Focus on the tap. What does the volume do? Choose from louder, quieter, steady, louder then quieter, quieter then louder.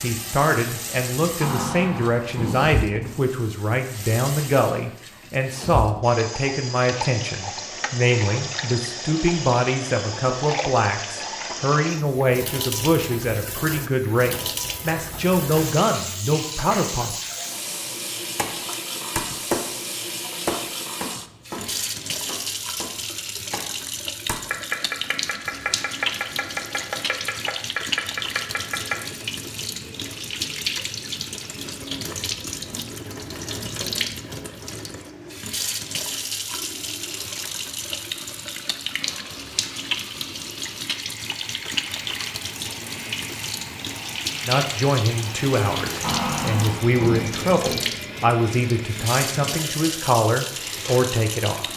steady.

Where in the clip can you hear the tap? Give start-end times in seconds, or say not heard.
0.0-51.7.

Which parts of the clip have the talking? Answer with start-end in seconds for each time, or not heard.
0.0-17.1, 44.5-51.7.